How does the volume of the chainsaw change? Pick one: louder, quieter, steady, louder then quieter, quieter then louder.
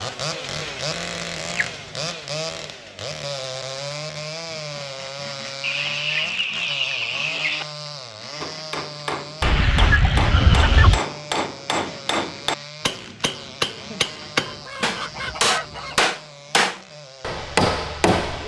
quieter.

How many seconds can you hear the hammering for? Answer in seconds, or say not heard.
10 s.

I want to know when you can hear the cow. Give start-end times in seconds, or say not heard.
not heard.